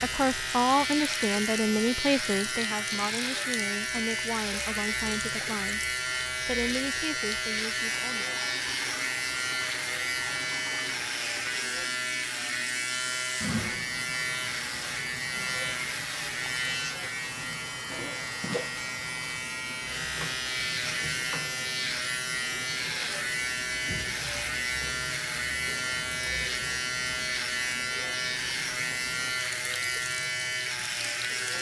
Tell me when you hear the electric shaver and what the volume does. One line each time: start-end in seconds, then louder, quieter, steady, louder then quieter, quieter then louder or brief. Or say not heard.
0.0-31.5 steady.